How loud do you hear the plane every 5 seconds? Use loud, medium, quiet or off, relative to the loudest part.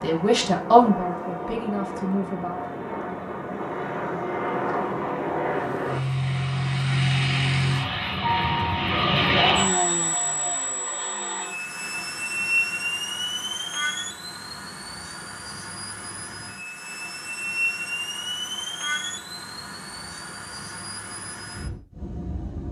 medium, loud, medium, medium, quiet.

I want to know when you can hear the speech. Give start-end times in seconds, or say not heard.
0.0-2.6.